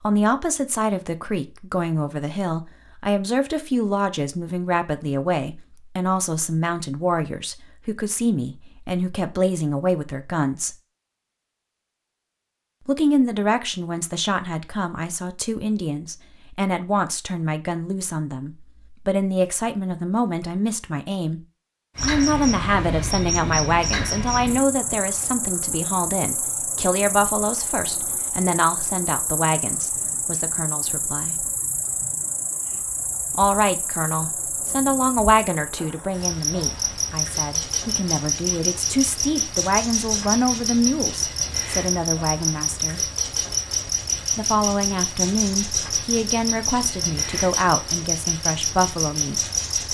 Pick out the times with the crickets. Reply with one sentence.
The crickets can be heard from 21.9 to 49.8 s.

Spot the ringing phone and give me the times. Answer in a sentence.
You can't hear the ringing phone here.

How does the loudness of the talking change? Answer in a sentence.
The volume of the talking stays about the same.